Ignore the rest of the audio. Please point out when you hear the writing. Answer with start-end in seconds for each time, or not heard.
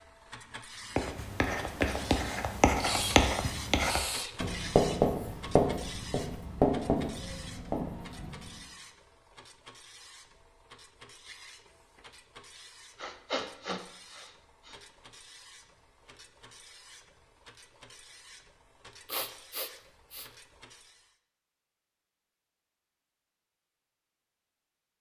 0.9-8.6.